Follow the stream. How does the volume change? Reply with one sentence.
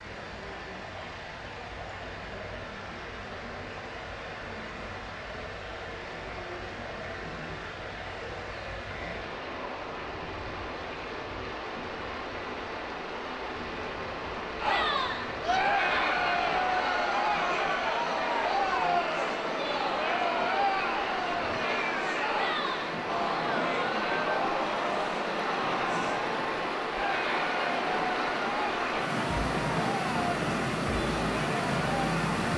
The loudness of the stream goes up.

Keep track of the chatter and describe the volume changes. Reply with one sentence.
The loudness of the chatter goes down.